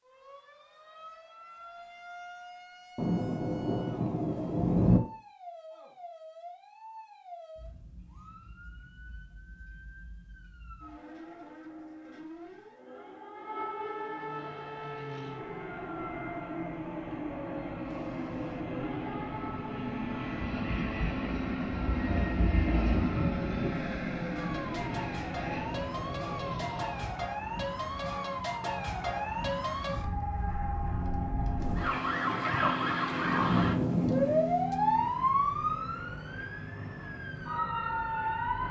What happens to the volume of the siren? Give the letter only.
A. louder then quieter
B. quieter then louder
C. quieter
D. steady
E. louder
E.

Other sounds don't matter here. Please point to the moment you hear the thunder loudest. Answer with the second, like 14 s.
5 s.